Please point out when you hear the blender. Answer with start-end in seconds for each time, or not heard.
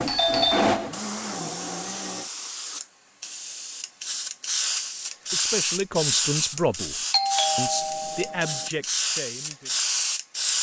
0.0-2.3.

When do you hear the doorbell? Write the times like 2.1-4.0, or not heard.
0.1-0.9, 7.1-8.7.